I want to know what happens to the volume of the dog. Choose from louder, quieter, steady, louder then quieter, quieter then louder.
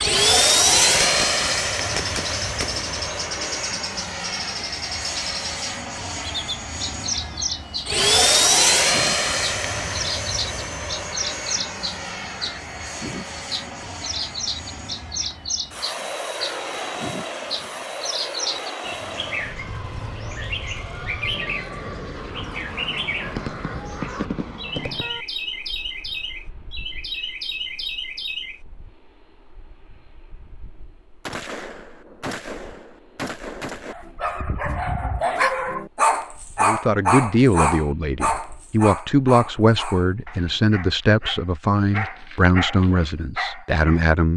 quieter then louder.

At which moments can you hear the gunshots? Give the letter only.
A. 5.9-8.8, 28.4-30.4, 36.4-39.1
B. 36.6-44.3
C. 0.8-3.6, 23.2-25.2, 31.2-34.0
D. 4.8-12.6
C.